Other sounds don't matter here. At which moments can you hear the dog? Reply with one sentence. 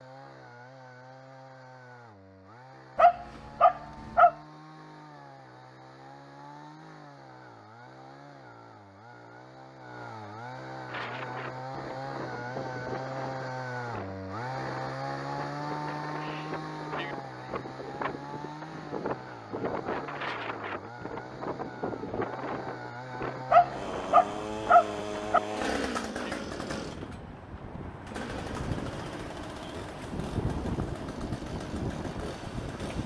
The dog can be heard from 3.0 to 4.3 s and from 23.5 to 25.4 s.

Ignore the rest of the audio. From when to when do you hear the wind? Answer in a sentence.
The wind can be heard from 10.8 to 33.0 s.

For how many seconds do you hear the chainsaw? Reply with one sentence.
You can hear the chainsaw for 33 seconds altogether.